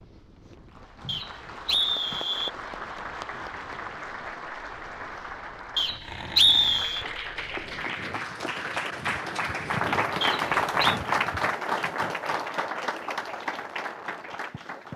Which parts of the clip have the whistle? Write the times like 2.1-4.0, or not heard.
1.1-2.5, 5.8-7.0, 10.2-11.0.